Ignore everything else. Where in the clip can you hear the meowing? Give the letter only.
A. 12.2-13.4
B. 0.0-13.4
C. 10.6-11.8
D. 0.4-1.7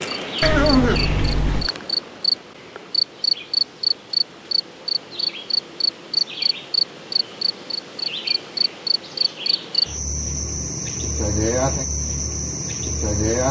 D.